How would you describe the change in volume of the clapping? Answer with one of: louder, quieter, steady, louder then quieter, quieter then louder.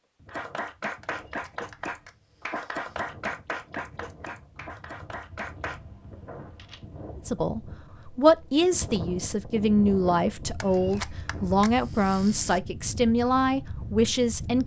quieter.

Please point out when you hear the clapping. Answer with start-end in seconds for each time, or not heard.
0.2-5.8.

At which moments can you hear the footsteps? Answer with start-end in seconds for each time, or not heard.
not heard.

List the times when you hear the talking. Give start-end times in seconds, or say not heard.
7.2-14.6.